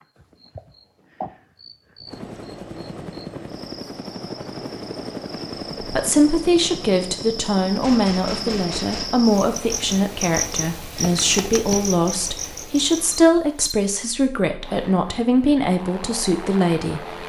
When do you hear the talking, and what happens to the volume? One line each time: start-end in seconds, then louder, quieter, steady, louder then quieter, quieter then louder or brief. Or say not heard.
5.8-17.2 steady.